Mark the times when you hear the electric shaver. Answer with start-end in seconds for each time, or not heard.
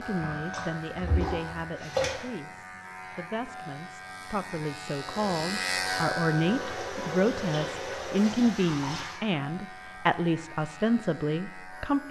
0.0-12.0.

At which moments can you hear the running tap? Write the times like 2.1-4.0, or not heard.
0.0-2.3, 5.0-9.2.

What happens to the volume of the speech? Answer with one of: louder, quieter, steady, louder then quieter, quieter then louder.
louder.